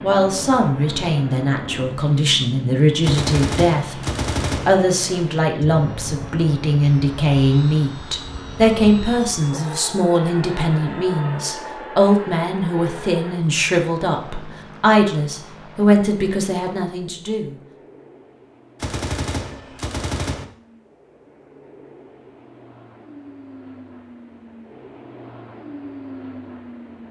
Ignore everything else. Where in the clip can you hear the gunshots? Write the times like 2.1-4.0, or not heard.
3.0-4.7, 18.8-20.4.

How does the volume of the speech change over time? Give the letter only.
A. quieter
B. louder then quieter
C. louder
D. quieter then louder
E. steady
E.